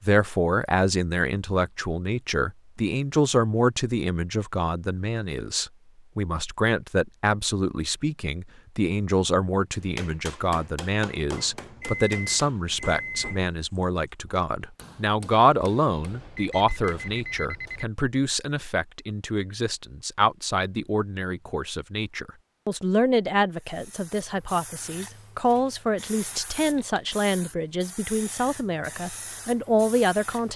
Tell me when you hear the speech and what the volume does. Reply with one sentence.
You can hear the speech from 0.0 to 30.5 s, at a steady volume.